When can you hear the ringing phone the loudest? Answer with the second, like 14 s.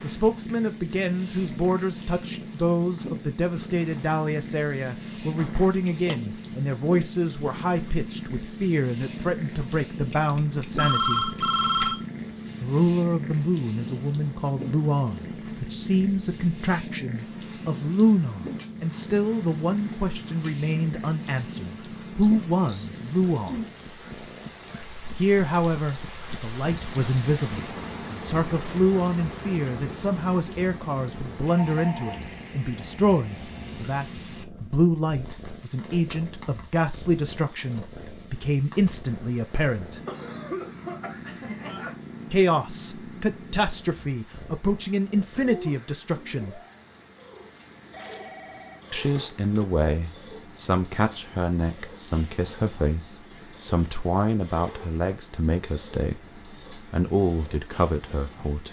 11 s.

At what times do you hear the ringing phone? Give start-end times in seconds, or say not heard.
10.1-12.1, 31.6-32.2, 47.9-49.7.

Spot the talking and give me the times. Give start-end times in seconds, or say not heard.
0.0-11.2, 12.6-23.6, 25.1-40.0, 42.3-46.6, 48.9-56.2, 56.9-58.6.